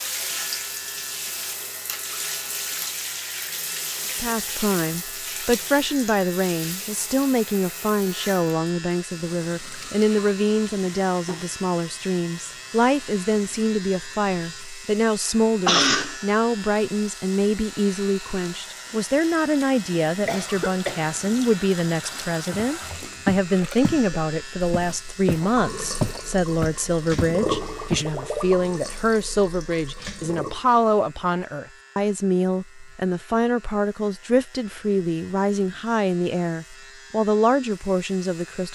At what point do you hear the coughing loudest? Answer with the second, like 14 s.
16 s.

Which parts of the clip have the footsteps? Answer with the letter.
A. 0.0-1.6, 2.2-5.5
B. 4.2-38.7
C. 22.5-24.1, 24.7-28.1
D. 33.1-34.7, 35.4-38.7
C.